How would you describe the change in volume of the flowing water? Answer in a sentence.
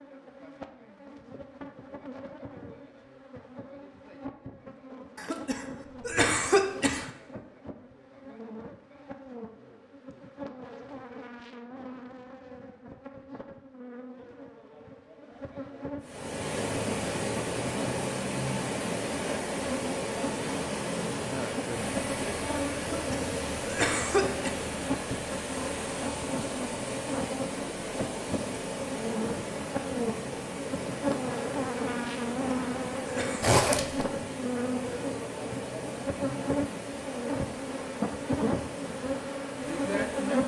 The loudness of the flowing water goes down.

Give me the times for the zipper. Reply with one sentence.
You can hear the zipper from 33.4 to 34.0 s.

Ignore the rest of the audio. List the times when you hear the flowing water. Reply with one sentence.
You can hear the flowing water from 16.0 to 40.4 s.